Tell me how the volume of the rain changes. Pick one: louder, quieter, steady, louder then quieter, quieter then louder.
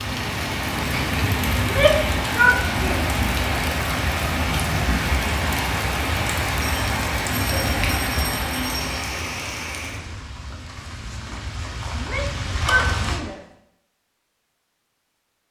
quieter.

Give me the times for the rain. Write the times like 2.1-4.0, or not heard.
0.0-13.2.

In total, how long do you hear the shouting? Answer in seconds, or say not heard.
3 s.